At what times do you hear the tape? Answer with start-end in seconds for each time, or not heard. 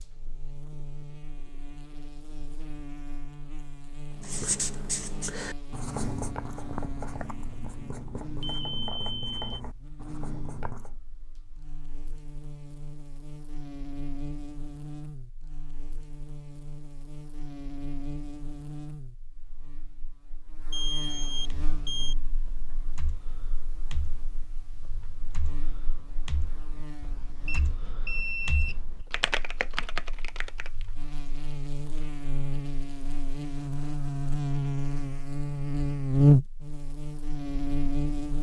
not heard.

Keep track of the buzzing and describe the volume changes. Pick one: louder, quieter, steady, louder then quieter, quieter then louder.
quieter then louder.